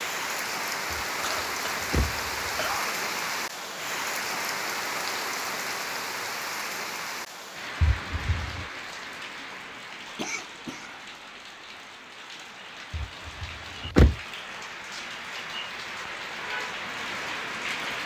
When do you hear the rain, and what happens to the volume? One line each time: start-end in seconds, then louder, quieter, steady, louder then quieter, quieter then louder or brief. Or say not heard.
0.0-18.0 quieter then louder.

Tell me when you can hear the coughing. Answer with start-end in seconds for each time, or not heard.
1.2-3.0, 10.2-11.2.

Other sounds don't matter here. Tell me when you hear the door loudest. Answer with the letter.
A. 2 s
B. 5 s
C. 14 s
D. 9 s
C.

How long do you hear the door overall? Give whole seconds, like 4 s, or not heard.
4 s.